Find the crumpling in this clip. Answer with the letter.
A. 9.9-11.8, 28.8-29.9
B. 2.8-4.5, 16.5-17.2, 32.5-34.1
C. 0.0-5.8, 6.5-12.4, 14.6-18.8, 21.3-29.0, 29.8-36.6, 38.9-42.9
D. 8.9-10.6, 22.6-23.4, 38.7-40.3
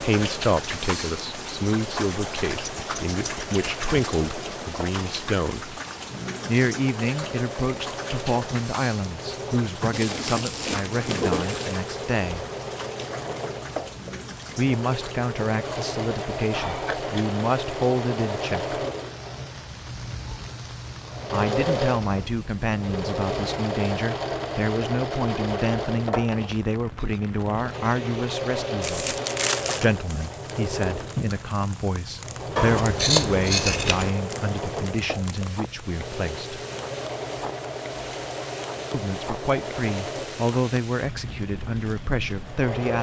A.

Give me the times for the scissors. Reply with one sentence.
The scissors can be heard from 2.8 to 4.5 s, from 16.5 to 17.2 s and from 32.5 to 34.1 s.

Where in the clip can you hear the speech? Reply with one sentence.
The speech can be heard from 0.0 to 5.8 s, from 6.5 to 12.4 s, from 14.6 to 18.8 s, from 21.3 to 29.0 s, from 29.8 to 36.6 s and from 38.9 to 42.9 s.